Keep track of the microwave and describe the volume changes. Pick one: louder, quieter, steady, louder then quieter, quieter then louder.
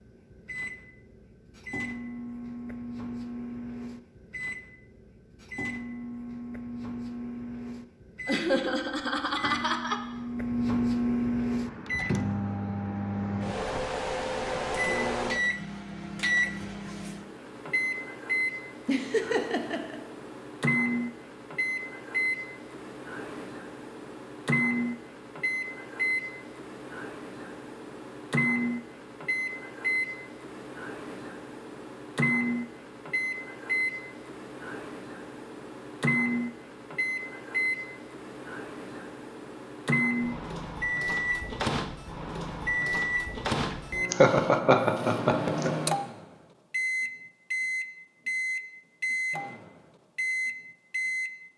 louder.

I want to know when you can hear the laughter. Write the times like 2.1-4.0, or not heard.
8.2-10.0, 18.9-20.0, 44.1-45.7.